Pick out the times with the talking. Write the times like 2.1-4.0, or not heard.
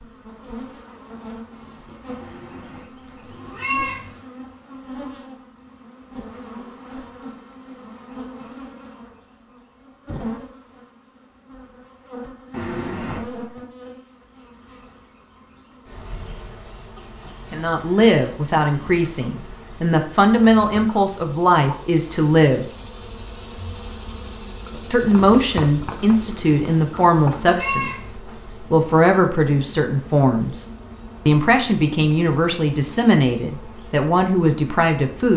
17.5-22.6, 24.9-30.6, 31.2-35.3.